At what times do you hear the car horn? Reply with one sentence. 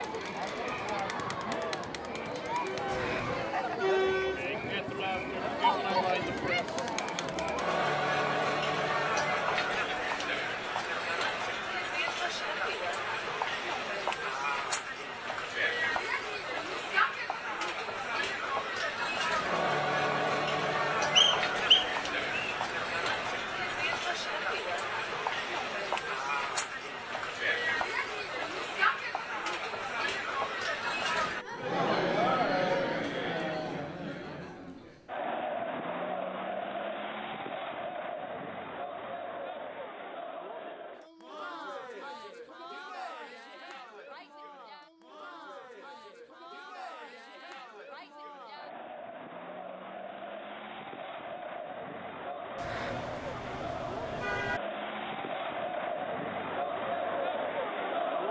The car horn can be heard from 2.9 to 3.5 s, from 22.0 to 24.0 s and from 52.5 to 54.6 s.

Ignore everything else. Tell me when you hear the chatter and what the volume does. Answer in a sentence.
You can hear the chatter from 0.0 to 58.2 s, getting quieter.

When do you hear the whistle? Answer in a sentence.
You can hear the whistle from 21.1 to 22.6 s.